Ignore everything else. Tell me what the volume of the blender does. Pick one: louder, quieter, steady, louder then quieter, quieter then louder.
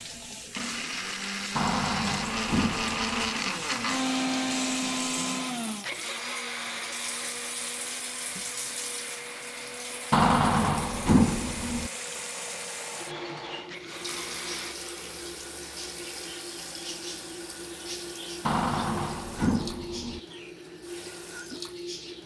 quieter.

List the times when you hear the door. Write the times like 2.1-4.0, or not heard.
1.6-3.3, 10.1-11.9, 18.4-20.2.